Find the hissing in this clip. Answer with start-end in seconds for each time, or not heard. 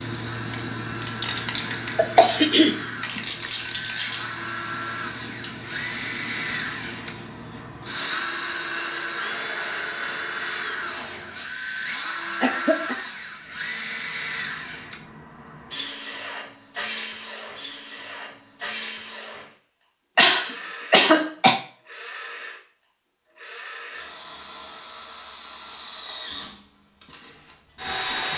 0.0-11.4.